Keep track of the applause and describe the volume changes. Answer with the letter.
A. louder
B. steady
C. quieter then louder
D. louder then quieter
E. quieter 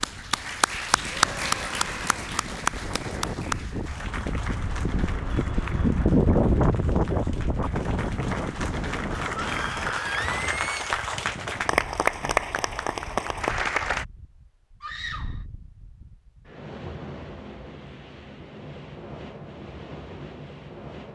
C.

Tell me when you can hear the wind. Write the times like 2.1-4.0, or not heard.
0.0-21.1.